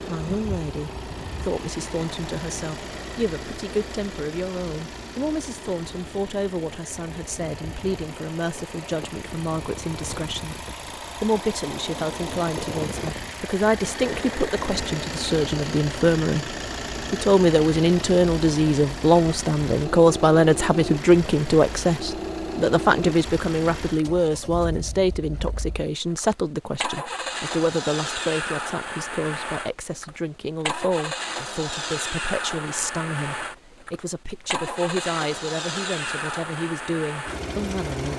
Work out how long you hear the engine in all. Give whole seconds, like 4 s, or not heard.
38 s.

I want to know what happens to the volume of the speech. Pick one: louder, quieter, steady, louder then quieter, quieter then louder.
louder then quieter.